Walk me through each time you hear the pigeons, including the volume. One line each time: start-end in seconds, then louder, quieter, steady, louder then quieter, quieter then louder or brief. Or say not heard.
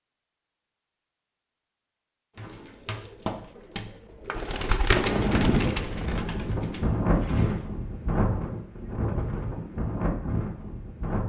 2.4-7.7 louder then quieter.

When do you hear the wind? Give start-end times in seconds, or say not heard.
4.9-11.2.